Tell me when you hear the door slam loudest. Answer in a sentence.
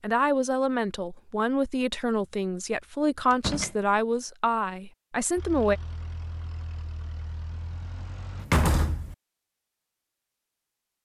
The loudest moment of the door slam is at 9 seconds.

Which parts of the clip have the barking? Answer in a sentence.
You can't hear the barking here.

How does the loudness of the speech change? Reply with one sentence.
The volume of the speech stays about the same.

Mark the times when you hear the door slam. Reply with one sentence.
The door slam can be heard from 3.3 to 3.7 s and from 8.4 to 9.2 s.